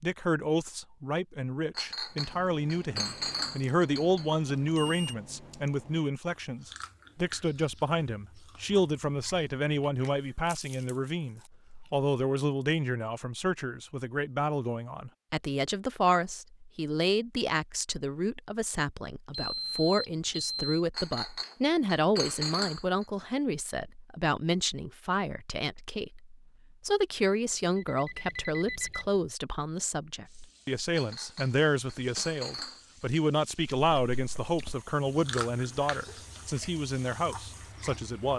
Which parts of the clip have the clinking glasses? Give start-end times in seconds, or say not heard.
1.8-4.3, 20.9-23.1, 30.9-33.0.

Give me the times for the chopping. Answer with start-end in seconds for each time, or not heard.
not heard.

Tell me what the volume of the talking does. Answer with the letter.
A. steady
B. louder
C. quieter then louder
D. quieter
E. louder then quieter
A.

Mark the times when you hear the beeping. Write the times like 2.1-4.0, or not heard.
4.6-5.2, 19.4-20.8, 27.8-29.2.